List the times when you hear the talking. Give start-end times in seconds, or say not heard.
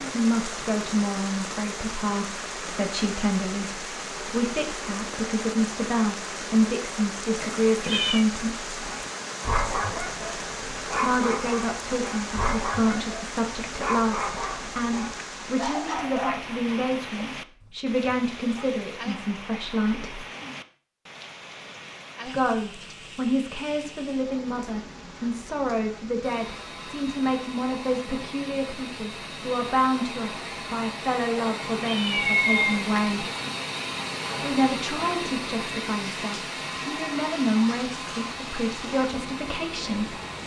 0.0-8.7, 10.9-20.2, 22.2-33.2, 34.4-40.2.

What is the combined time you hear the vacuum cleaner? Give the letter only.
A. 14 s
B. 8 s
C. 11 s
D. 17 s
A.